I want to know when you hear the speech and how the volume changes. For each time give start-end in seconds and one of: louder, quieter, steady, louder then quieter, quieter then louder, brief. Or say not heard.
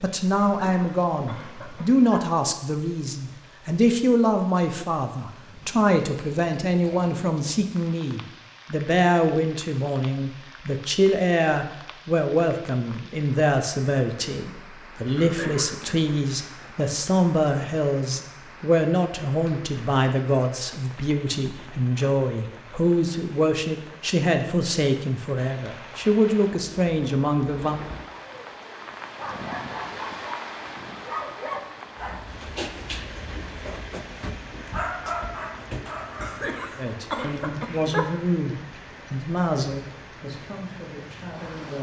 0.0-27.8 steady
36.8-41.7 quieter.